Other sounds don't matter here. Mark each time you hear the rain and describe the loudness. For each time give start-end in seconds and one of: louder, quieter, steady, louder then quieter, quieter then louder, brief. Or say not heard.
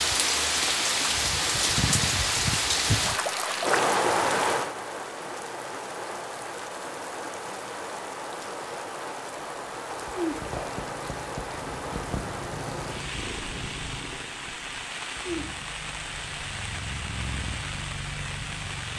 0.0-18.9 quieter.